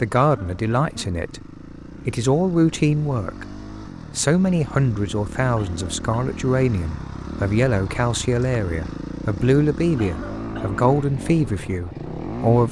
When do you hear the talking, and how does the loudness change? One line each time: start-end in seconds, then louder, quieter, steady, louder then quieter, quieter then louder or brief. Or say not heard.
0.0-1.4 brief
2.0-3.5 brief
4.2-12.6 steady.